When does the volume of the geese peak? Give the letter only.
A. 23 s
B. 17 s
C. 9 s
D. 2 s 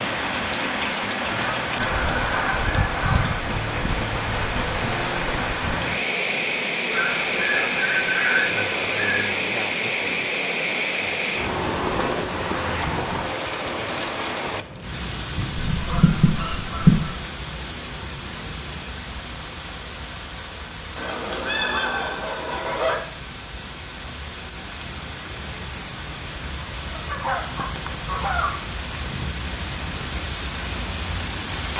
B.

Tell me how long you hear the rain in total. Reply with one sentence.
The rain can be heard for 32 seconds in total.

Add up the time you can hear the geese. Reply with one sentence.
You can hear the geese for 10 seconds altogether.